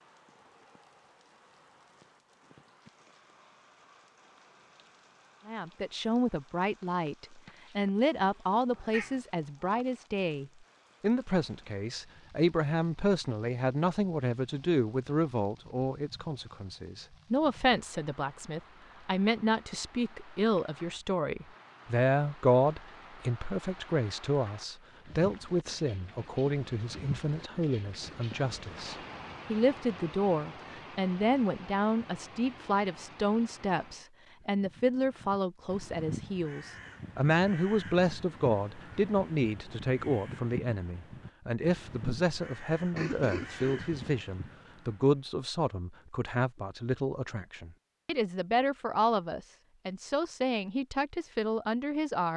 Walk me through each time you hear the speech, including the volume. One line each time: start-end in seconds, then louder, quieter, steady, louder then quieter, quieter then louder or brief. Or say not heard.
5.5-52.3 steady.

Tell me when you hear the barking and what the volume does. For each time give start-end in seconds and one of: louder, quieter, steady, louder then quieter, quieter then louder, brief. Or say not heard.
not heard.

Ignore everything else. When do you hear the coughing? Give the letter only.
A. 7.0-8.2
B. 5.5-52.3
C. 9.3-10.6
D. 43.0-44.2
D.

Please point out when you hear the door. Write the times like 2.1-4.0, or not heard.
not heard.